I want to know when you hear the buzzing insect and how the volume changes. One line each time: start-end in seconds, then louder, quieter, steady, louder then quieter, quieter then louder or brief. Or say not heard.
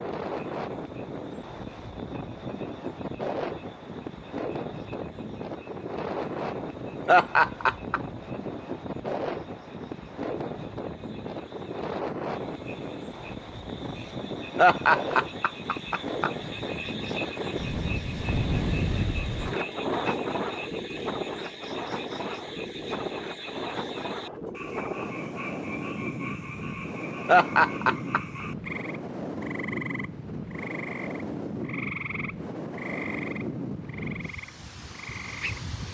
not heard.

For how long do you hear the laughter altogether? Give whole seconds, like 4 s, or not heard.
4 s.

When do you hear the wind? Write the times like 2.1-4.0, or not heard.
0.0-35.8.